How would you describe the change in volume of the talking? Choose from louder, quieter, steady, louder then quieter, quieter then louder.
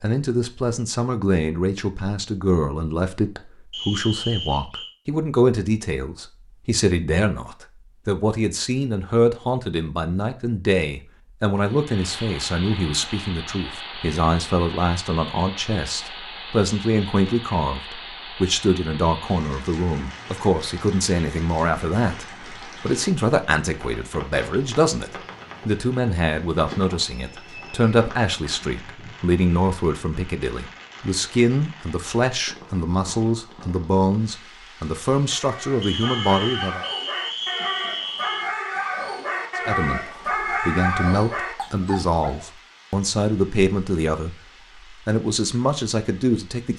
steady.